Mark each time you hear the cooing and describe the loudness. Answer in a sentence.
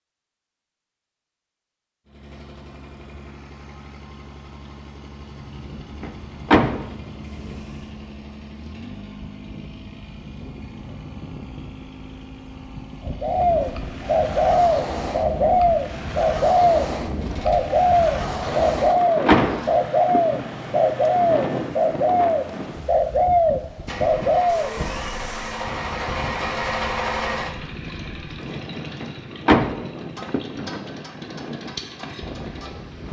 The cooing can be heard from 13.1 to 24.8 s, at a steady volume.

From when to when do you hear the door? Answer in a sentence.
You can hear the door from 6.0 to 6.9 s, from 18.8 to 20.4 s and from 29.0 to 30.8 s.